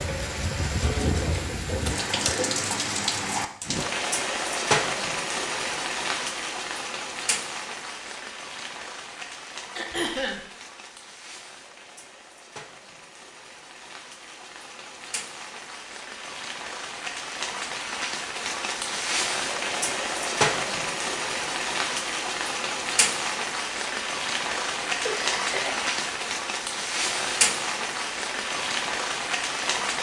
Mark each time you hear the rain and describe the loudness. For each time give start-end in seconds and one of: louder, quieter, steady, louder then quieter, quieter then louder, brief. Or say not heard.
0.0-29.9 quieter then louder.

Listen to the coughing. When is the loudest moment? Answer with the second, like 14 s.
10 s.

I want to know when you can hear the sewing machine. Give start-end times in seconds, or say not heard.
0.0-2.6.